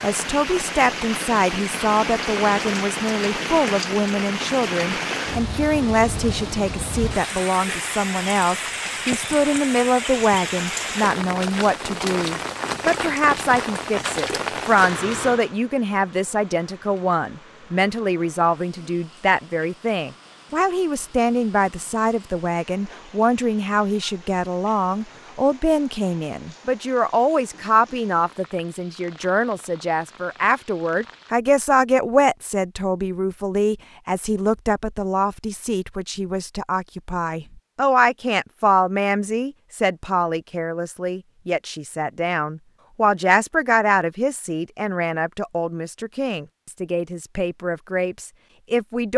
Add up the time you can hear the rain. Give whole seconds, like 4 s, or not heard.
31 s.